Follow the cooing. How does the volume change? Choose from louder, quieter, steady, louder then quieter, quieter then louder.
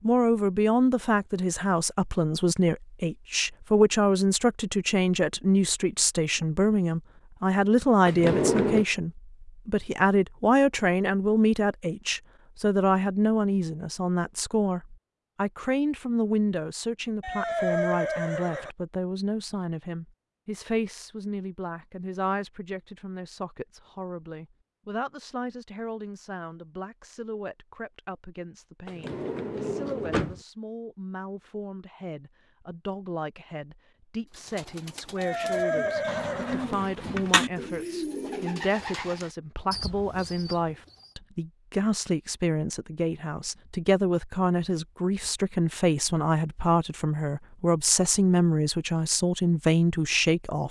louder then quieter.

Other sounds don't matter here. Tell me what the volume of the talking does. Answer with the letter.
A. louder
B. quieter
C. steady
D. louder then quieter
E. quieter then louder
E.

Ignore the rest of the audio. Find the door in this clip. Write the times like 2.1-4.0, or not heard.
8.1-8.8, 28.9-30.4, 36.0-37.9.